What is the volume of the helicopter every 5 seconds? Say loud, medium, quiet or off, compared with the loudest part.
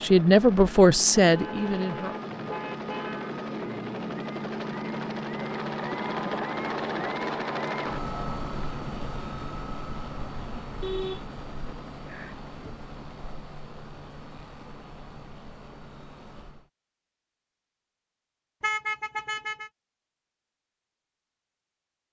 loud, loud, medium, quiet, off.